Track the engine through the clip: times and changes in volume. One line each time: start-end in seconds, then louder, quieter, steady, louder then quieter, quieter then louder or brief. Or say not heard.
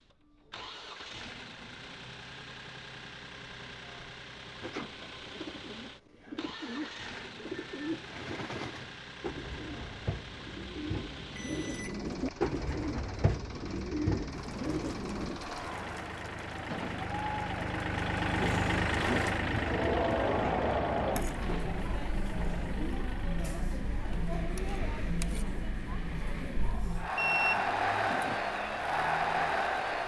0.0-30.0 louder then quieter.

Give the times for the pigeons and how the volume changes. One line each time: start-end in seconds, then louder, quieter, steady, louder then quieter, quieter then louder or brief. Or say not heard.
4.6-15.4 louder.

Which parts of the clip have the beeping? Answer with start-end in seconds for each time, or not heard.
11.3-12.1, 27.1-28.4.